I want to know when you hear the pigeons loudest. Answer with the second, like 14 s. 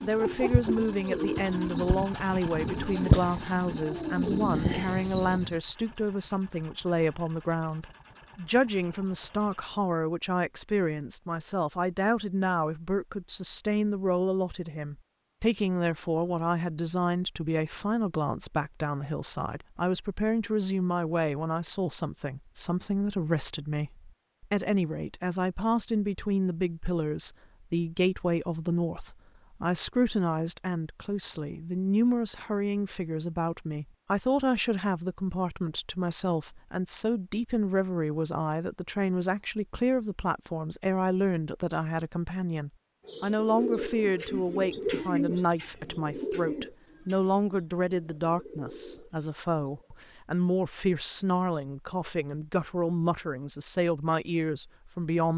3 s.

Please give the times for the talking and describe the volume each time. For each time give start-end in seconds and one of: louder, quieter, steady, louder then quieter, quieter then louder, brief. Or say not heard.
0.0-55.3 steady.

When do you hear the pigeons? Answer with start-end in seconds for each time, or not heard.
0.0-5.5, 43.0-50.0.